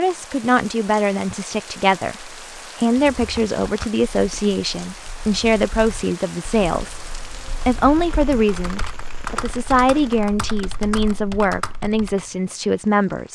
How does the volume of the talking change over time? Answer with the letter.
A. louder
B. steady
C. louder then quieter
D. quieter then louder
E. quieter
B.